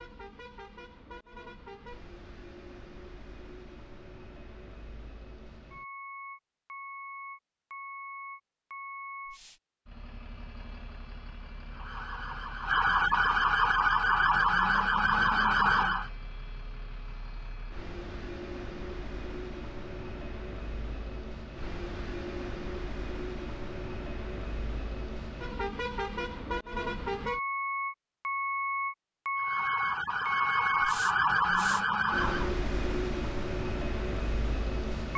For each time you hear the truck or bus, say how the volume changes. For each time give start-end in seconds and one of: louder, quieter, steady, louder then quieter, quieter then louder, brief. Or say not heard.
0.0-35.1 louder.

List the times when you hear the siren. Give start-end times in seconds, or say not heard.
11.7-16.1, 29.4-32.5.